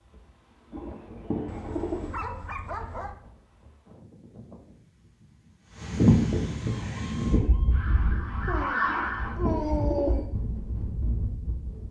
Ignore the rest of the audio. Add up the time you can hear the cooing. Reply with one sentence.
You can hear the cooing for 3 seconds altogether.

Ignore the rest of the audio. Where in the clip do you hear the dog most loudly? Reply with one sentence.
The loudest moment of the dog is at 10 seconds.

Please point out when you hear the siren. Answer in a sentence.
You can hear the siren from 6.8 to 9.4 s.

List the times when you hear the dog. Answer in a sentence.
You can hear the dog from 1.4 to 3.2 s and from 8.4 to 10.3 s.